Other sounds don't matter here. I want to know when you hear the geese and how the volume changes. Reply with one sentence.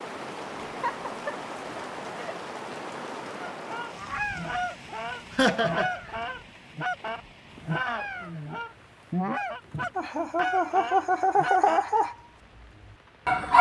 You can hear the geese from 3.5 to 11.8 s, at a steady volume.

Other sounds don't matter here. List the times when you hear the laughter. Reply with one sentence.
You can hear the laughter from 0.7 to 2.4 s, from 5.3 to 6.1 s and from 9.9 to 12.1 s.